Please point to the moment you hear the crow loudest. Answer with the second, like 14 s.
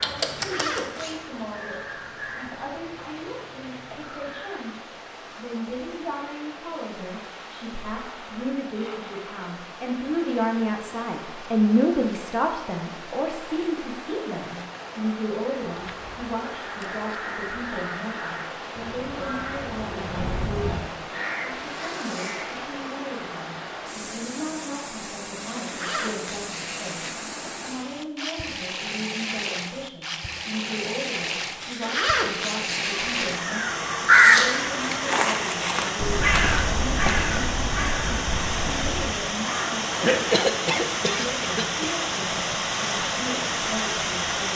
34 s.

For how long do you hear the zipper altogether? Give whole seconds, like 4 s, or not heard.
4 s.